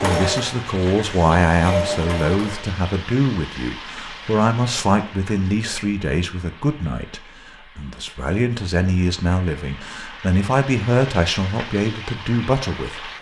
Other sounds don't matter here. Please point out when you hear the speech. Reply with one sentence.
You can hear the speech from 0.0 to 12.9 s.